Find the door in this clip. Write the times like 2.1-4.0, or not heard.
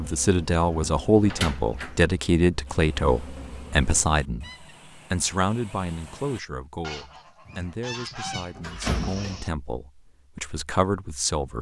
0.8-2.0, 7.5-9.4.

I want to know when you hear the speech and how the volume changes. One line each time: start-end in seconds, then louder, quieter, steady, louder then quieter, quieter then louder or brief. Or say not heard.
0.0-11.5 quieter then louder.